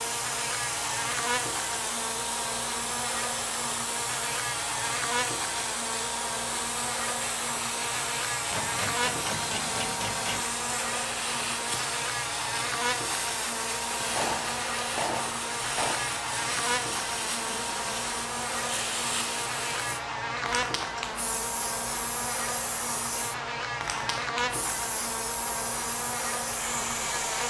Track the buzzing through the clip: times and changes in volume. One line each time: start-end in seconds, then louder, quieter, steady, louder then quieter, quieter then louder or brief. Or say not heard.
0.0-27.4 steady.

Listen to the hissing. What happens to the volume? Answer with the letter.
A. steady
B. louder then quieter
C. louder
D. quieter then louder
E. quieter
A.